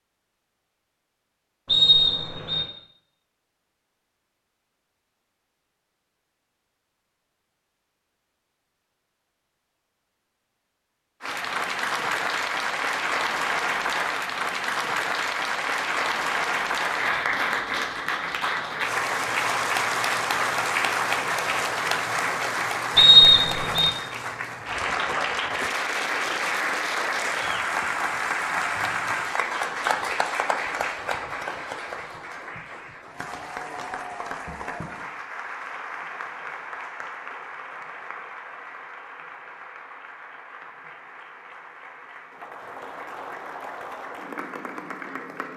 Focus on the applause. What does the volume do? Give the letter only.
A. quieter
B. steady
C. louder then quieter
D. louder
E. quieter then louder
A.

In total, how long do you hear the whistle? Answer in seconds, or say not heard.
2 s.